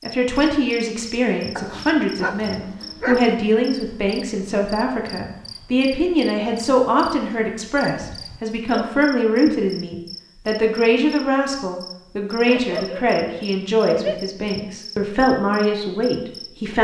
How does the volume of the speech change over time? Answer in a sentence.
The loudness of the speech stays about the same.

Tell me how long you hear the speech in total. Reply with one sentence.
The speech can be heard for 17 seconds in total.